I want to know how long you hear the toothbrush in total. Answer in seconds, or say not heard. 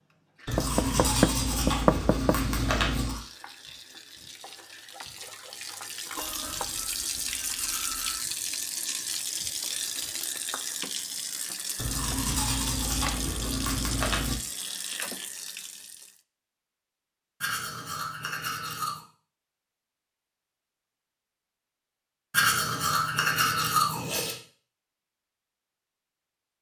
11 s.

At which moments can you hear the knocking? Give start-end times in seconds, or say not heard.
0.6-2.4.